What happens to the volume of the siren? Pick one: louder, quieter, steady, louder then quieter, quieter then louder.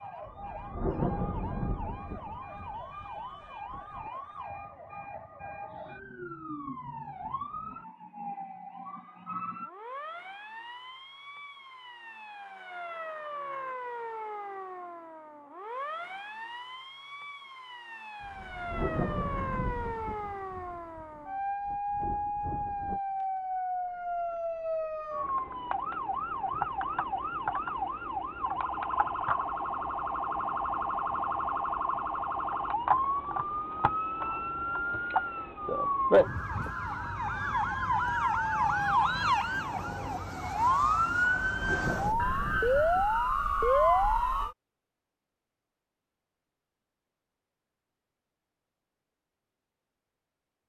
louder.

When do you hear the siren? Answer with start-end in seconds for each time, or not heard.
0.0-44.5.